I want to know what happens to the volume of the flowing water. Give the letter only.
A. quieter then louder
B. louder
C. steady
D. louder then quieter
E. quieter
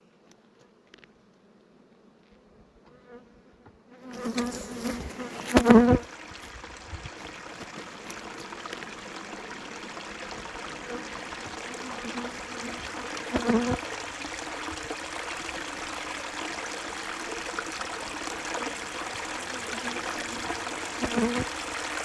B.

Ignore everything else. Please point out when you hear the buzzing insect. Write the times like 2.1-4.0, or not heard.
0.1-22.0.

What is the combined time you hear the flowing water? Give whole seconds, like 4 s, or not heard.
17 s.